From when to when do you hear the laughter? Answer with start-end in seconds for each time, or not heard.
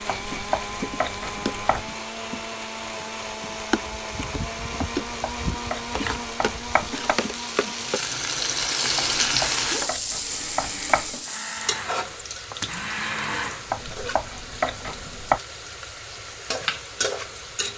not heard.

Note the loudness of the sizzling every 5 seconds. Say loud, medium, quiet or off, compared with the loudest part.
medium, loud, medium, medium.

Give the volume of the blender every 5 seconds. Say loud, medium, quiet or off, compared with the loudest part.
loud, loud, loud, off.